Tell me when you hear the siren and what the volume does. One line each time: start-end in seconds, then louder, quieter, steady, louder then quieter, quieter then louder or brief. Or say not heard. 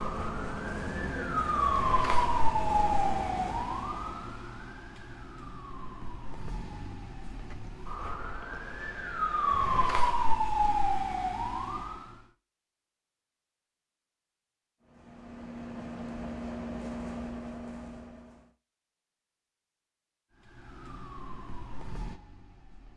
0.0-12.2 quieter then louder
20.6-22.9 brief.